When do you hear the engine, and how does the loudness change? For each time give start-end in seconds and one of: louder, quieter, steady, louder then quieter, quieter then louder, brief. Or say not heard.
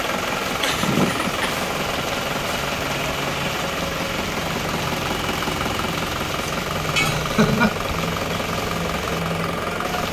0.0-10.0 steady.